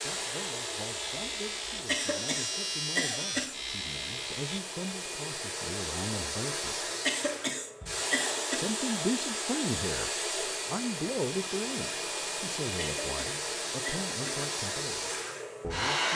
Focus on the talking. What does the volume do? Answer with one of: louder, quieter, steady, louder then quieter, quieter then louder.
louder then quieter.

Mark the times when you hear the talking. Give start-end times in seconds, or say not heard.
0.0-6.9, 8.6-16.1.